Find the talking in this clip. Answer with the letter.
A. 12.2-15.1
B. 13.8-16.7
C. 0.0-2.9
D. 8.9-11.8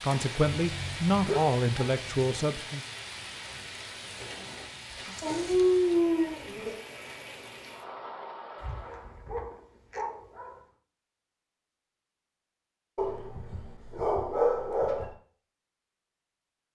C.